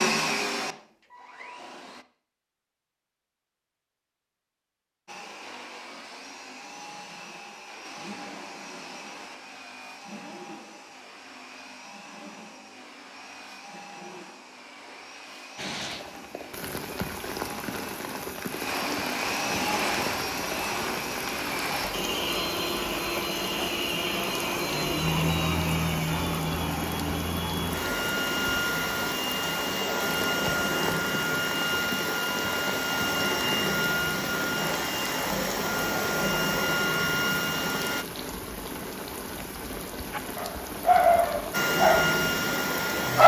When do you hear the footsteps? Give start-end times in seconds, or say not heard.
not heard.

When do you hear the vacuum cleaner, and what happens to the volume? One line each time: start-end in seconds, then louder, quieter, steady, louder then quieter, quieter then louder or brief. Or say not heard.
0.0-2.0 brief
5.0-38.0 louder
41.5-43.2 brief.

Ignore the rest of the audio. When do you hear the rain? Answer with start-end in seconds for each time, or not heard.
15.6-43.2.